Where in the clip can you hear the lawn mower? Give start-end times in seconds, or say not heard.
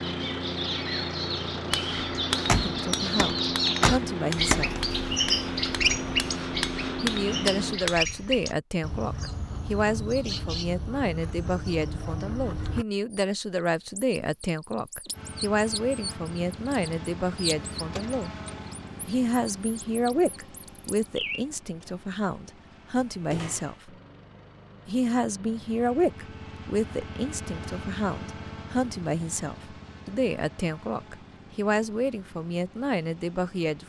0.0-7.8, 15.1-33.8.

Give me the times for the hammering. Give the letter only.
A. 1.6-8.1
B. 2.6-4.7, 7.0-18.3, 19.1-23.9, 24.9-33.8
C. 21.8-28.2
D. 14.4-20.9
A.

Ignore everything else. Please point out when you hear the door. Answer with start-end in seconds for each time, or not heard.
2.3-4.8, 17.8-18.6, 22.9-23.9.